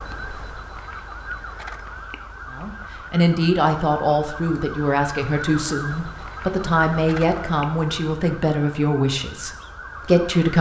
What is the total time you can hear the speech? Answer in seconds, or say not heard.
8 s.